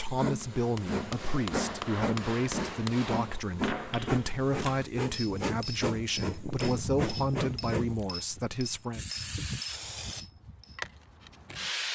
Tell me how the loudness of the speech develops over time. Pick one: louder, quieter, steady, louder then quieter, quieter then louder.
steady.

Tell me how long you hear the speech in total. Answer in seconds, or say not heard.
9 s.